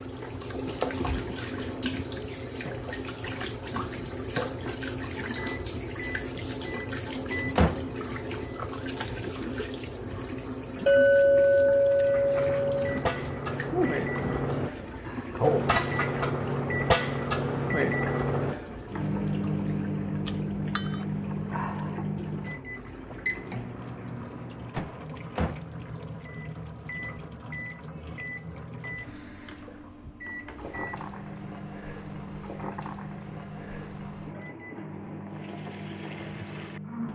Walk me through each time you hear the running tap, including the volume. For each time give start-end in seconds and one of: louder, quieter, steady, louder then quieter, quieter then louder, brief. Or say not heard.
0.0-37.0 quieter.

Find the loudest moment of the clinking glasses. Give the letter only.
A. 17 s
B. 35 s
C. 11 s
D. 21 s
C.